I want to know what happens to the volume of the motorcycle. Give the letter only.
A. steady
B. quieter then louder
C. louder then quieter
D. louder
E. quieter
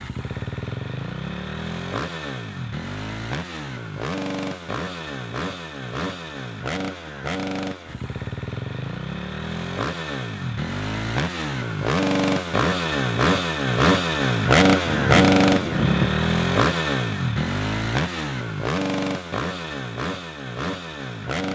C.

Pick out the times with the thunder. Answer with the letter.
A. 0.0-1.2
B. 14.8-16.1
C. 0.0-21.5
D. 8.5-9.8
B.